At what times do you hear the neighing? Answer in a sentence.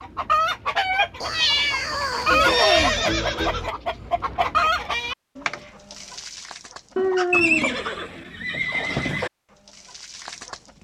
You can hear the neighing from 2.3 to 3.7 s and from 7.3 to 9.3 s.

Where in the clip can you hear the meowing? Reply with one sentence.
You can hear the meowing from 1.2 to 3.0 s and from 7.0 to 8.3 s.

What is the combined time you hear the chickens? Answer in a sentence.
You can hear the chickens for 11 seconds altogether.